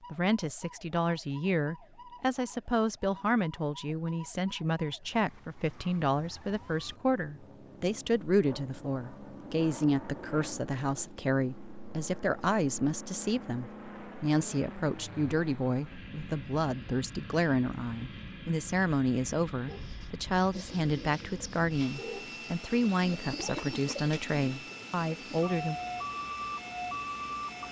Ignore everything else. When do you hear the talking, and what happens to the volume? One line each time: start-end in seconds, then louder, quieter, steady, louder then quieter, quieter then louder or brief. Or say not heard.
0.1-25.8 steady.